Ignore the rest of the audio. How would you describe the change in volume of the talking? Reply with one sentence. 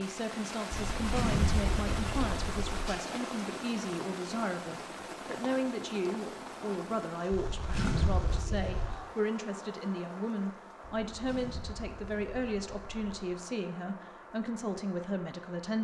The loudness of the talking stays about the same.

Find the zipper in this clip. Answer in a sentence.
You can hear the zipper from 0.7 to 2.9 s, from 7.3 to 8.9 s and from 10.8 to 13.2 s.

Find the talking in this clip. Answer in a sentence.
You can hear the talking from 0.0 to 15.7 s.